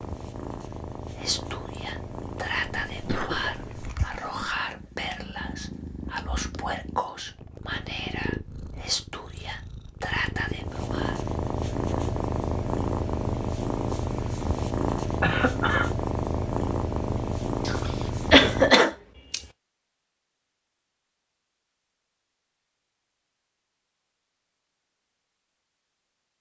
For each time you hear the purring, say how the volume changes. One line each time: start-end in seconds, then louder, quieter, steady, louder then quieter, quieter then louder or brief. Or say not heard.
0.0-18.8 louder.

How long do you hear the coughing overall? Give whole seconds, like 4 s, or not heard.
4 s.